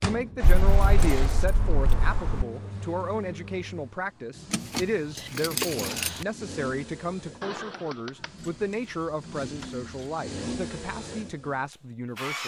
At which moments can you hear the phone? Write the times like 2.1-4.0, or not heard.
0.3-1.5, 7.4-8.3.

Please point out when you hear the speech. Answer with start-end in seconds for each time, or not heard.
0.0-12.4.